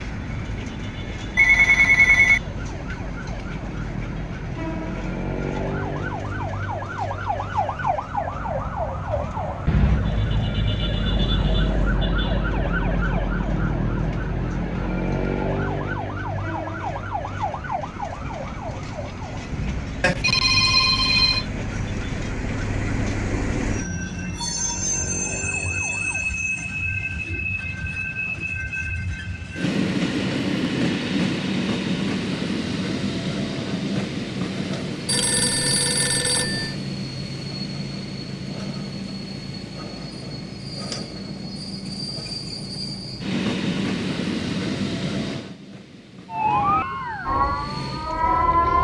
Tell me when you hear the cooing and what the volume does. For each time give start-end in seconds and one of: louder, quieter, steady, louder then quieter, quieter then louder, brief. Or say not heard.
not heard.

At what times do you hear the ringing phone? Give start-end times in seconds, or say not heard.
1.4-2.4, 20.0-21.4, 35.0-36.8.